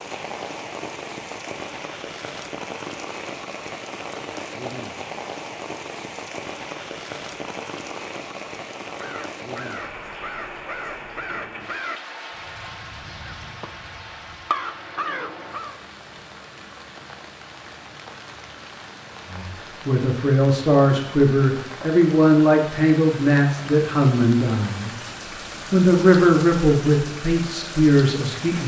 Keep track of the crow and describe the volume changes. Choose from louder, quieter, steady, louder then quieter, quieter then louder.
quieter then louder.